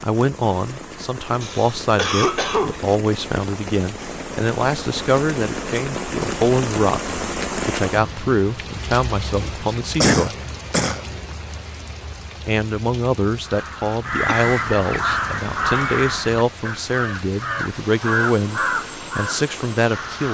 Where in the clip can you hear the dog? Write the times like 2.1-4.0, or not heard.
not heard.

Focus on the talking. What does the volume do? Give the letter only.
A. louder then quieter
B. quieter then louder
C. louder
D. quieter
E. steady
E.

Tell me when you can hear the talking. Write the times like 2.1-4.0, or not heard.
0.0-10.3, 12.4-20.2.